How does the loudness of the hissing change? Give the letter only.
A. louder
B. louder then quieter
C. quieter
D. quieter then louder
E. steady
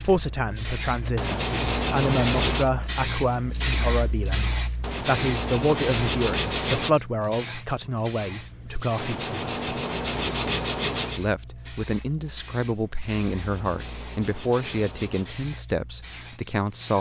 C.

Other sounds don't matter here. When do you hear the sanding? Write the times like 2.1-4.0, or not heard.
1.1-2.7, 4.8-7.0, 8.9-11.2, 13.3-15.4.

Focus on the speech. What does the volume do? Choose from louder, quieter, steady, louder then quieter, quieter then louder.
steady.